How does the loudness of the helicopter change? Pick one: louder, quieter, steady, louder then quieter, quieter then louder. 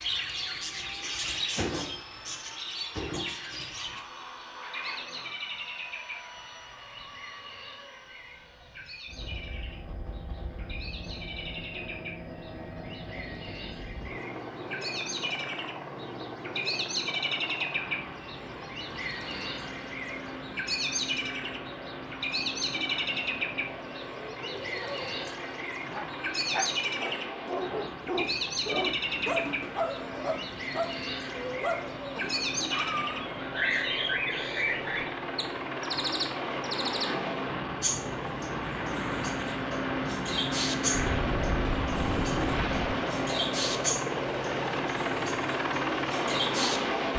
louder.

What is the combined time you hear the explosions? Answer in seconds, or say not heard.
2 s.